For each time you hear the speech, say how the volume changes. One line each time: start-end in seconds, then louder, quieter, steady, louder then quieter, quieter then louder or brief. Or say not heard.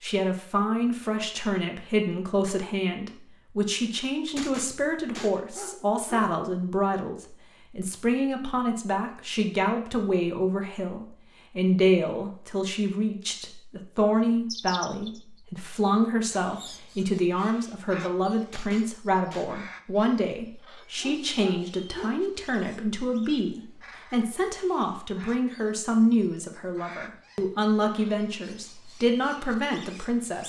0.0-30.4 steady.